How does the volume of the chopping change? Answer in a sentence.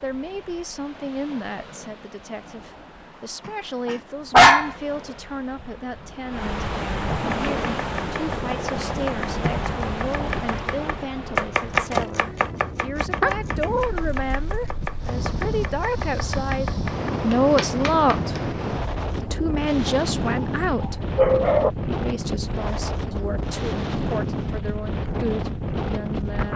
The volume of the chopping goes up, then down.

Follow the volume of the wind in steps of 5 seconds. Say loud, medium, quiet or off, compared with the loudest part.
quiet, loud, medium, loud, loud, loud.